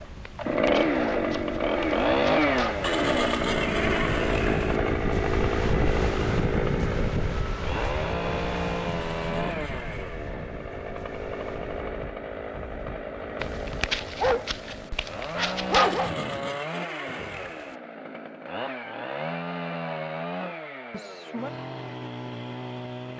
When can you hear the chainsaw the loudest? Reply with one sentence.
The loudest moment of the chainsaw is at 2 seconds.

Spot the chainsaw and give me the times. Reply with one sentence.
The chainsaw can be heard from 0.0 to 23.1 s.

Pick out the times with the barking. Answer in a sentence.
You can hear the barking from 0.5 to 2.8 s and from 13.4 to 16.1 s.